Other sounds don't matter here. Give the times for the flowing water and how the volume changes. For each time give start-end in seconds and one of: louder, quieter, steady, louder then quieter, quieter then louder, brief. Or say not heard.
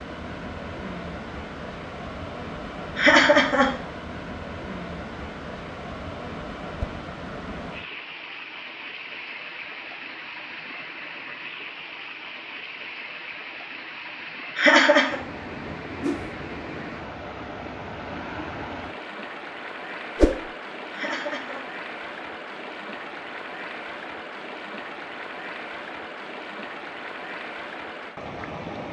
0.0-28.8 steady.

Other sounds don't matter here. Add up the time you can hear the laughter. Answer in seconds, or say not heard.
2 s.